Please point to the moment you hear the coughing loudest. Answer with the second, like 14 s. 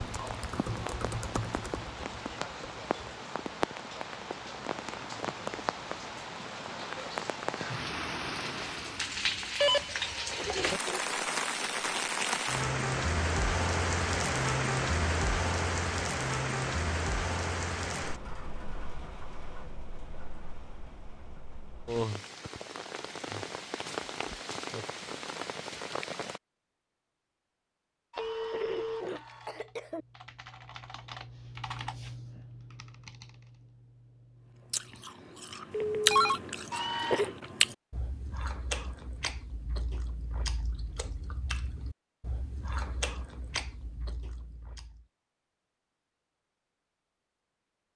37 s.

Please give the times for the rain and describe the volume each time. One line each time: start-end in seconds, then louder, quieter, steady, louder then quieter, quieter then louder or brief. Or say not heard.
0.0-26.4 louder then quieter.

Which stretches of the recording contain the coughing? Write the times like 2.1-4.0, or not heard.
10.2-11.1, 28.1-30.1, 36.7-37.4.